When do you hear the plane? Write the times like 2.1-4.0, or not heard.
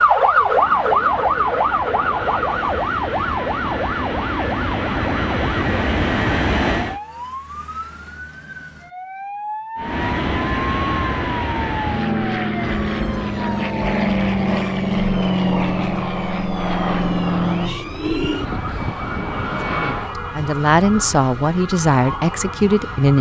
0.0-7.0, 9.8-20.1.